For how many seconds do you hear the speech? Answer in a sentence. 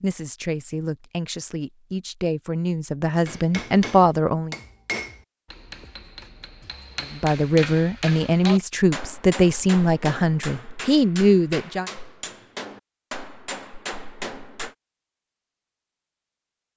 You can hear the speech for 9 seconds altogether.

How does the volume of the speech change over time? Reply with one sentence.
The loudness of the speech goes up.